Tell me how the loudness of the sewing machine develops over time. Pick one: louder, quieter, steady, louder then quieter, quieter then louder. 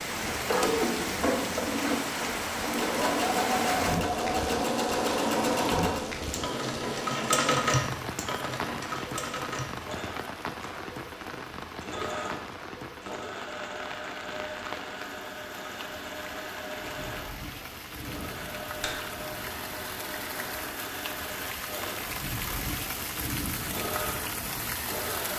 quieter.